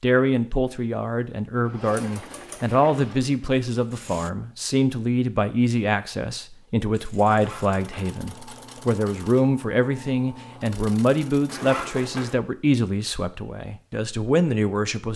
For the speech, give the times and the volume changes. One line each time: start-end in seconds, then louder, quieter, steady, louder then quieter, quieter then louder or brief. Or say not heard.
0.0-15.1 steady.